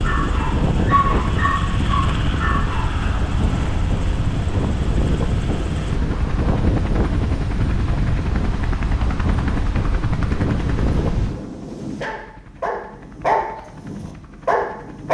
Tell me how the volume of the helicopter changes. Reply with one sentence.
The volume of the helicopter goes down.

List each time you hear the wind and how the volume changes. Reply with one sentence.
You can hear the wind from 0.0 to 11.4 s, at a steady volume.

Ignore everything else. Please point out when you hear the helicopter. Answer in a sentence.
You can hear the helicopter from 0.0 to 15.0 s.